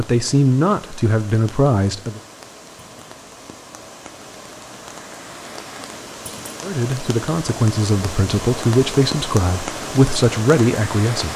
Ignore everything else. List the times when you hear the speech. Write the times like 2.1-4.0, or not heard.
0.0-2.2, 6.6-11.3.